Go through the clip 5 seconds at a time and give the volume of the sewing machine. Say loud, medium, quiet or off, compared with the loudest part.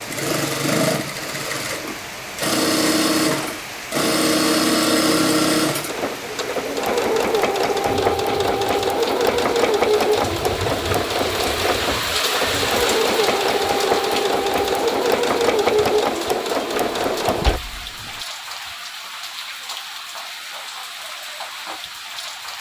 loud, loud, loud, loud, off.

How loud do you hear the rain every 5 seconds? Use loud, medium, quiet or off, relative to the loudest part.
medium, medium, loud, medium, medium.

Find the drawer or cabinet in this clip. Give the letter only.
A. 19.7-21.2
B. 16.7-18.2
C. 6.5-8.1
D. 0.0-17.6
B.